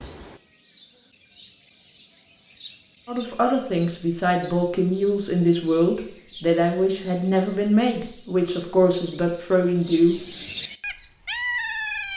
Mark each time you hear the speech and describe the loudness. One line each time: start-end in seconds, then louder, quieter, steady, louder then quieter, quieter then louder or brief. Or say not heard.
3.0-10.2 steady.